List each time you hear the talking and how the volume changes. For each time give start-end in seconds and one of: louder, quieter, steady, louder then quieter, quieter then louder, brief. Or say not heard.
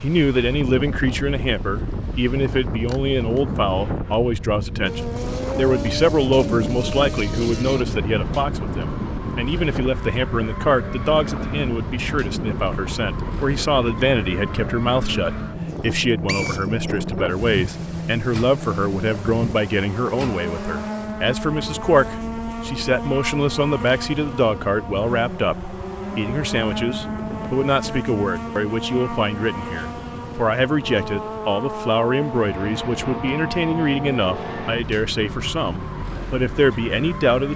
0.0-37.5 steady.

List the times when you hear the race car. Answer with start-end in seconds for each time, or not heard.
4.8-37.5.